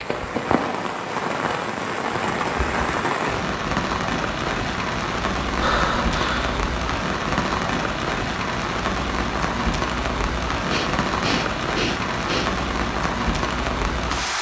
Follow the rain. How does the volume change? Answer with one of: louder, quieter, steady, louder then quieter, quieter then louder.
steady.